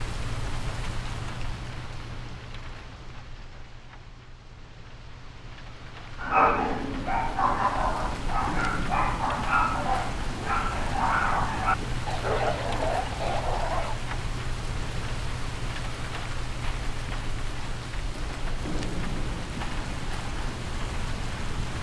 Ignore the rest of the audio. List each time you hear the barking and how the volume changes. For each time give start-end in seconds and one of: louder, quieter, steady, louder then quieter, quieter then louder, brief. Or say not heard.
6.2-13.9 steady.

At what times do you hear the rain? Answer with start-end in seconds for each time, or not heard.
0.0-21.7.